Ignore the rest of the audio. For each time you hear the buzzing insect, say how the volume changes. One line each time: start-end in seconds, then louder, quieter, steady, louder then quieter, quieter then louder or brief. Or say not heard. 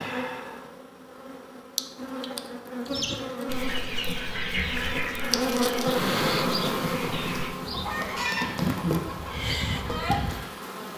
0.0-10.9 louder then quieter.